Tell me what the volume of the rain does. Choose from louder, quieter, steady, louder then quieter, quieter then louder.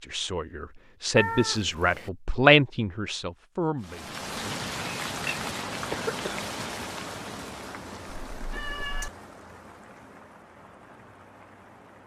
quieter.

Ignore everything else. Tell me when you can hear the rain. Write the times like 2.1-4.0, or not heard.
3.8-12.0.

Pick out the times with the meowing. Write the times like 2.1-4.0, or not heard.
1.1-2.1, 4.5-6.3, 8.3-9.1.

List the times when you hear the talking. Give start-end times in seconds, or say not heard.
0.1-4.6.